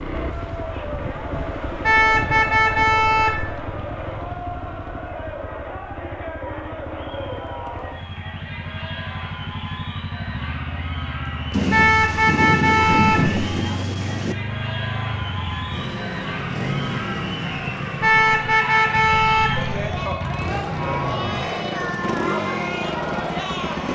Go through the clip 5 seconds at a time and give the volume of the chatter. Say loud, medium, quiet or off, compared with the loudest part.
medium, medium, medium, loud, loud.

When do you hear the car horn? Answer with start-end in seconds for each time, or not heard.
1.8-3.5, 11.7-13.4, 18.0-19.8.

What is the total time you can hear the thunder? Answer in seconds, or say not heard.
3 s.